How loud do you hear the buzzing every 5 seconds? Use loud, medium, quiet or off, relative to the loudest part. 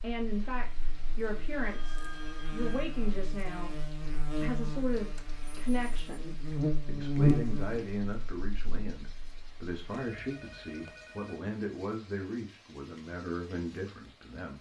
medium, loud, off.